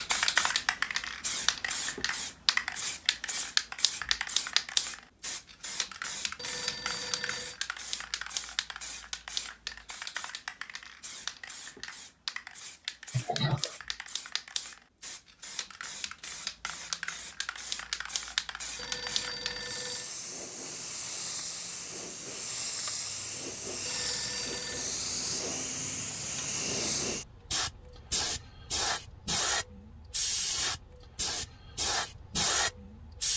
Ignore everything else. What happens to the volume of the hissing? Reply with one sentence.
The loudness of the hissing goes down, then up.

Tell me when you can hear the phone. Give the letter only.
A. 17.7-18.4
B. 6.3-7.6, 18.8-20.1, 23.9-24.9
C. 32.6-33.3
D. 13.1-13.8
B.